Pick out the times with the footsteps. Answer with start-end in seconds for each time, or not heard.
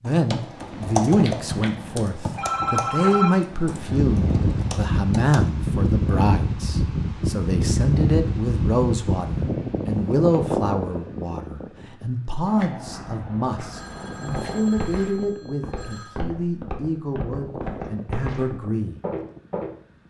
14.2-19.8.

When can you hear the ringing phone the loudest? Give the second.
3 s.